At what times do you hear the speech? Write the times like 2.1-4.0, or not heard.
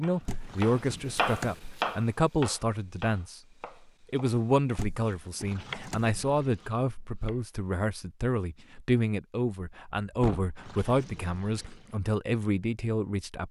0.0-3.4, 4.1-13.4.